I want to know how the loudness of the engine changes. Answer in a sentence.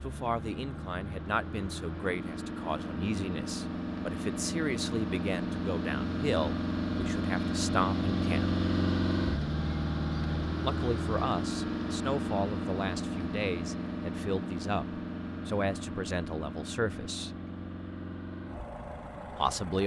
The loudness of the engine goes up, then down.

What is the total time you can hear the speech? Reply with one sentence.
The speech can be heard for 16 seconds in total.